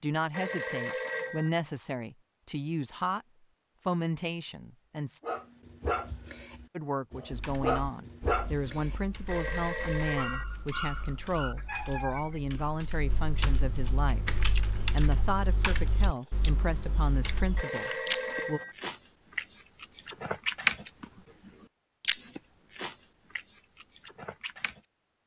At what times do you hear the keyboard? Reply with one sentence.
The keyboard can be heard from 7.3 to 17.6 s.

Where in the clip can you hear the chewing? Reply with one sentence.
The chewing can be heard from 14.1 to 24.8 s.